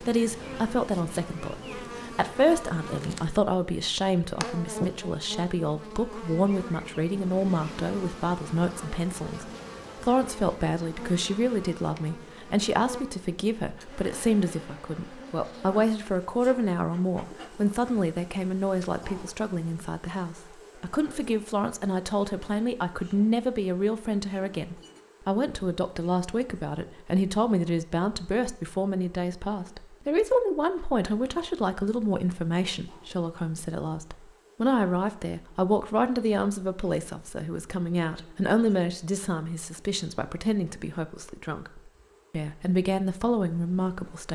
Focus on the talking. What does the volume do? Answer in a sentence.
The volume of the talking stays about the same.